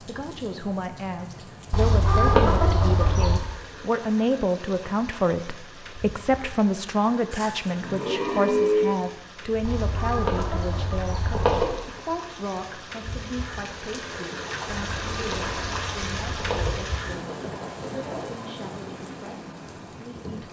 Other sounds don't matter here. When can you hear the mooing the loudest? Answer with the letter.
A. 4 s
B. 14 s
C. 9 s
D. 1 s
C.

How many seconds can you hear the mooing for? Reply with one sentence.
You can hear the mooing for 2 seconds altogether.